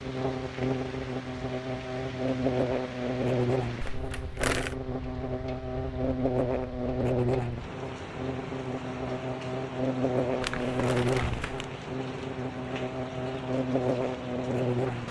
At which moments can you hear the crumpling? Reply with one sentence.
You can hear the crumpling from 3.8 to 4.8 s and from 10.4 to 11.7 s.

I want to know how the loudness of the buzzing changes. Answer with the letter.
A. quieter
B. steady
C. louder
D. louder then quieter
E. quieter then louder
B.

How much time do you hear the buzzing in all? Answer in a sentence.
The buzzing can be heard for 15 seconds in total.